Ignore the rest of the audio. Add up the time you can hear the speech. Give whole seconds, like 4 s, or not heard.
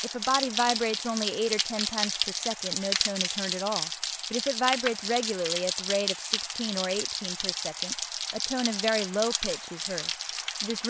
11 s.